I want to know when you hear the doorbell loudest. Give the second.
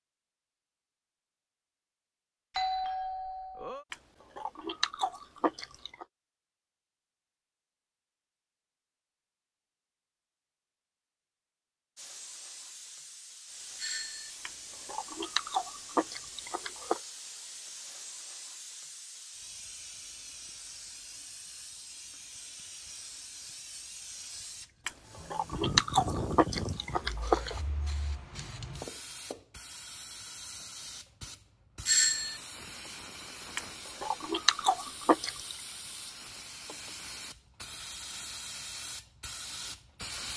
32 s.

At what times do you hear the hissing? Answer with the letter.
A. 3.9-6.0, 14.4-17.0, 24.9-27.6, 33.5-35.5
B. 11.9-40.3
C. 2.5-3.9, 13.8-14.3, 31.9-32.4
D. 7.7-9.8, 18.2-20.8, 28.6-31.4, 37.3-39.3
B.